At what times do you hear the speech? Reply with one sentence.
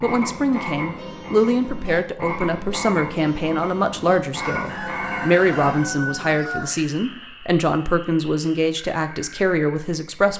You can hear the speech from 0.0 to 10.3 s.